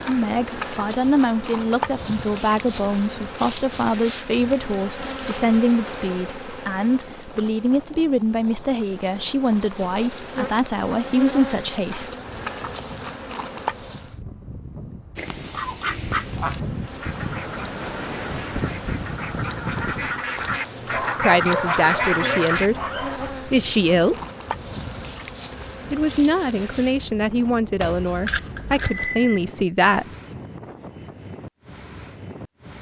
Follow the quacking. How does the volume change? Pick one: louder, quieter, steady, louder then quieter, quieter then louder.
quieter then louder.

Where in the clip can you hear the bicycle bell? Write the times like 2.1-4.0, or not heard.
27.8-29.4.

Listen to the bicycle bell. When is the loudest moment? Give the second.
29 s.